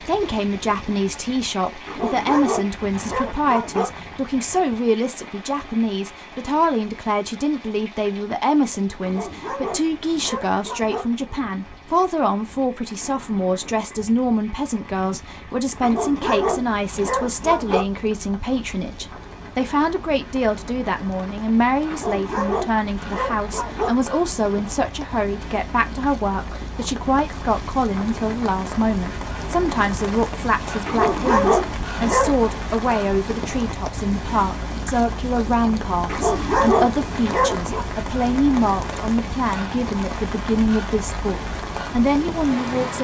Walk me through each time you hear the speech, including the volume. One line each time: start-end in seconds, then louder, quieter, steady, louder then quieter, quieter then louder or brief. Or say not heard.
0.1-42.9 steady.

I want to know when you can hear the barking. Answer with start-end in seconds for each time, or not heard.
1.9-3.9, 9.0-11.1, 15.8-17.9, 21.9-23.9, 30.9-32.4, 36.0-37.9.